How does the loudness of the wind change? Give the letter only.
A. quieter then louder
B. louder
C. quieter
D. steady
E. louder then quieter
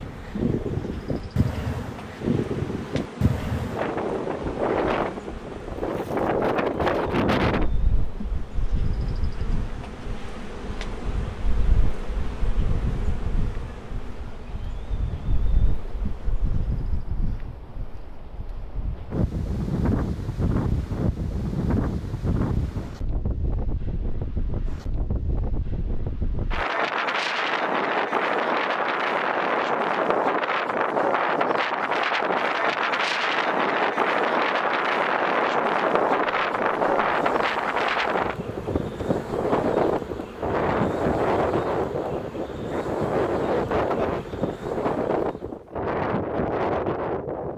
A.